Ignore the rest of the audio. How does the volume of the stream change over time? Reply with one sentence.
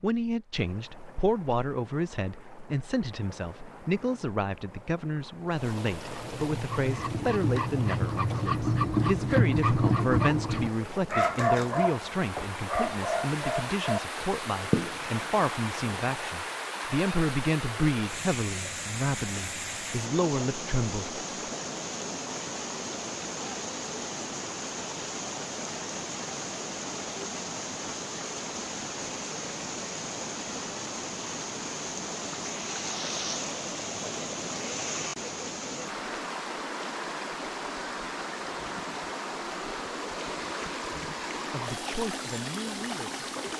The volume of the stream goes up.